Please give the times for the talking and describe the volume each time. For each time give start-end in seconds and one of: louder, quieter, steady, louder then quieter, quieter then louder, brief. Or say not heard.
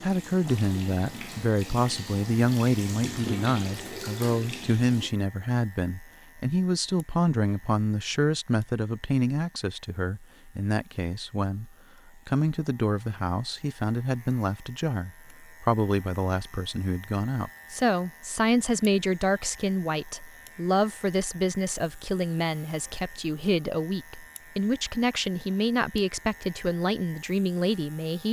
0.0-28.2 steady.